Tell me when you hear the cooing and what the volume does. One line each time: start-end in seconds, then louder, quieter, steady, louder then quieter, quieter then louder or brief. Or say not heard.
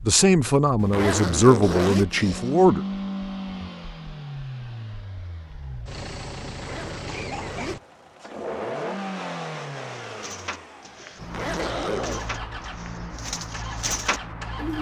10.1-14.7 quieter then louder.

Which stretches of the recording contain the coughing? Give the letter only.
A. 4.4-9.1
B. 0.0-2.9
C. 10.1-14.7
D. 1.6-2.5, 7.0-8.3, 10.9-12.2
D.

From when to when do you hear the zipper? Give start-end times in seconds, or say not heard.
0.8-2.0, 6.5-7.8, 11.2-12.3.